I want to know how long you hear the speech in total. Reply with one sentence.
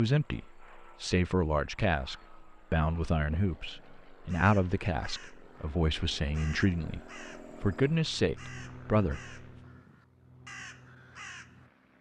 The speech can be heard for 9 seconds in total.